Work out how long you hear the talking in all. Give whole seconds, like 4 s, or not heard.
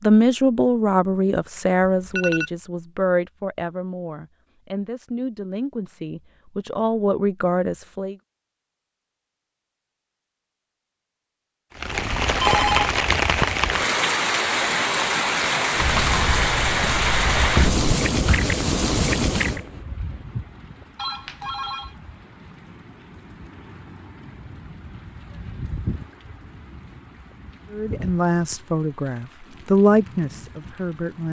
12 s.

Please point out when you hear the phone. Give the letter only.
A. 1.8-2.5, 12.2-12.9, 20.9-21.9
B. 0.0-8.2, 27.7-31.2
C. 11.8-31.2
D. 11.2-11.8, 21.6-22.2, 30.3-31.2
A.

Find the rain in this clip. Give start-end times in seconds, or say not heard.
11.8-31.2.